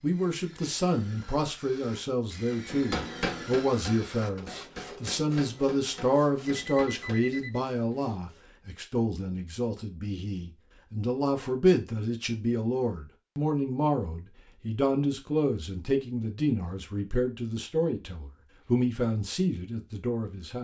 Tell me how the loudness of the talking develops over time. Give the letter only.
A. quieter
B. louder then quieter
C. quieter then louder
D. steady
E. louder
D.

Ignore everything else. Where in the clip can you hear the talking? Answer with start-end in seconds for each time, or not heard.
0.0-20.6.